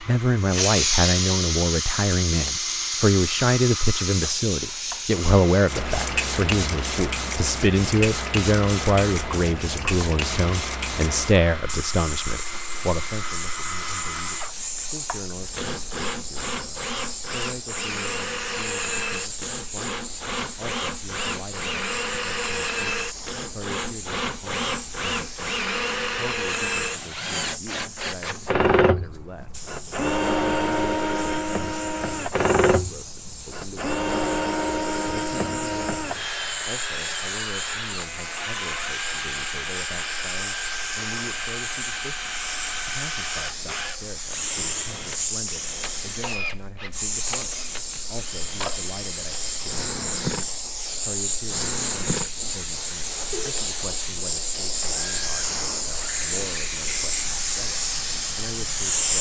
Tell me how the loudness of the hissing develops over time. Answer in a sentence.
The loudness of the hissing goes down, then up.